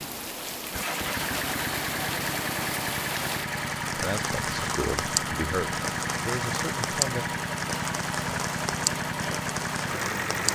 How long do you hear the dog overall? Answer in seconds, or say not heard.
not heard.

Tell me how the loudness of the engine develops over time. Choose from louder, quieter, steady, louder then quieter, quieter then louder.
steady.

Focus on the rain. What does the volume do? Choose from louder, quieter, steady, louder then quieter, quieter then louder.
steady.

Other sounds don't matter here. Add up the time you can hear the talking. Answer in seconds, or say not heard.
3 s.